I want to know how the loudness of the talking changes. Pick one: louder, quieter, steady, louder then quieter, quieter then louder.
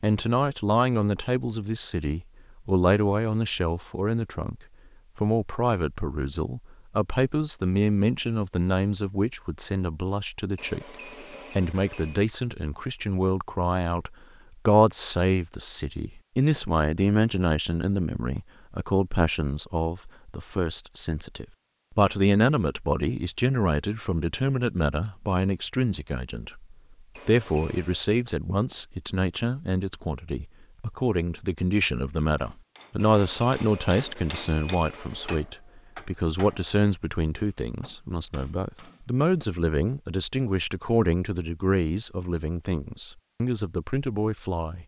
steady.